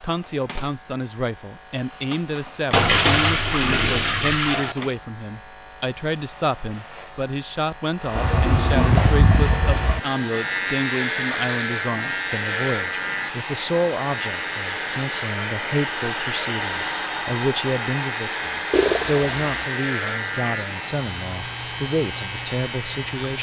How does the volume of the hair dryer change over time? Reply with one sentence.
The loudness of the hair dryer goes up, then down.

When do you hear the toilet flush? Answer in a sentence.
You can hear the toilet flush from 2.7 to 4.8 s, from 8.2 to 10.0 s and from 18.7 to 19.6 s.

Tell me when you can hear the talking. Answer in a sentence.
You can hear the talking from 0.0 to 23.3 s.